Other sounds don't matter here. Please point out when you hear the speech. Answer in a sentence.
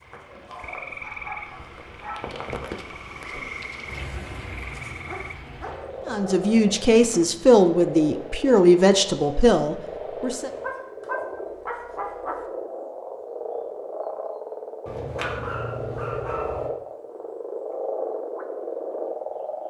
The speech can be heard from 6.0 to 10.5 s.